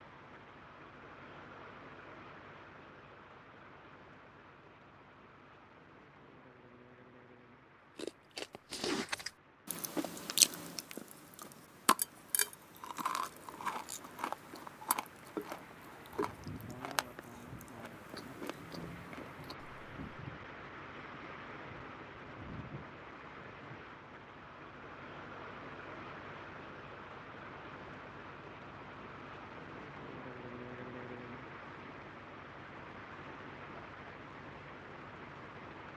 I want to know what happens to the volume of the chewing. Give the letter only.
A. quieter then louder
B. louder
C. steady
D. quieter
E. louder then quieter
D.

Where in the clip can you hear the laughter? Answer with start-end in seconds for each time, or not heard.
not heard.